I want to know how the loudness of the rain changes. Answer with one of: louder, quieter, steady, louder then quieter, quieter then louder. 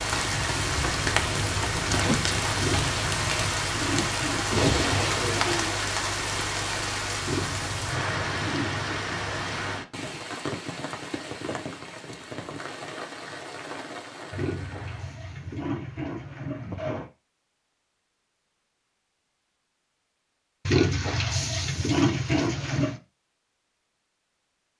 quieter.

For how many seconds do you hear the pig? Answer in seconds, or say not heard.
9 s.